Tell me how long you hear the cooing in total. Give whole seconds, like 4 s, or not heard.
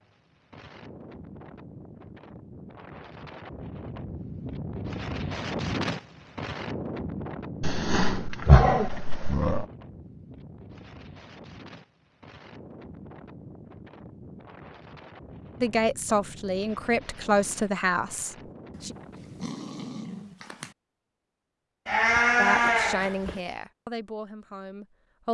not heard.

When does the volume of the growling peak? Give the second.
9 s.